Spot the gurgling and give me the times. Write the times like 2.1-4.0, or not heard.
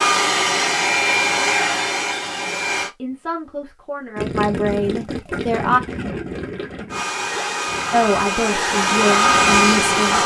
4.2-10.2.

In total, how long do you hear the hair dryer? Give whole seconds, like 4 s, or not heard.
6 s.